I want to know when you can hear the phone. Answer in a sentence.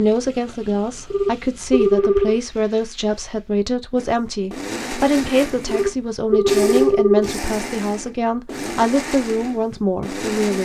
The phone can be heard from 1.1 to 2.4 s and from 5.7 to 7.3 s.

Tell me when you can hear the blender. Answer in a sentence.
You can hear the blender from 4.0 to 10.5 s.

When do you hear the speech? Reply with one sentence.
The speech can be heard from 0.0 to 10.5 s.